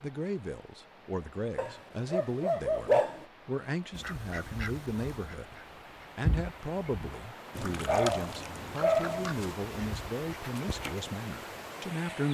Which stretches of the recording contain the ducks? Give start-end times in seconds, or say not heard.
4.0-10.9.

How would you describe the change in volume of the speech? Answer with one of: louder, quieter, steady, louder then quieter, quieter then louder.
steady.